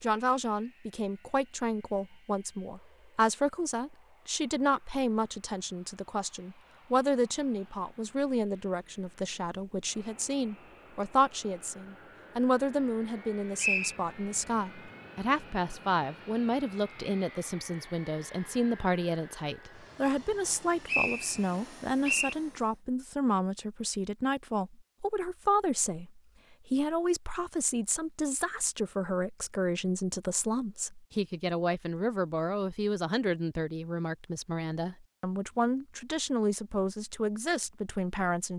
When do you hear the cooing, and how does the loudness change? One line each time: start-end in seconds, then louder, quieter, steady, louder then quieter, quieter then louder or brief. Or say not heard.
not heard.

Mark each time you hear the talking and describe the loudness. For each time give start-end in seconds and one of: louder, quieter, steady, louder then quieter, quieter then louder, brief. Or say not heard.
0.0-38.5 steady.